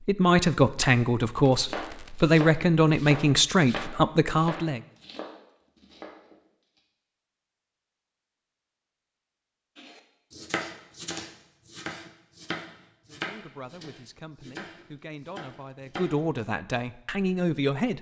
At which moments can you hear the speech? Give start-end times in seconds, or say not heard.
0.0-4.8, 13.1-17.9.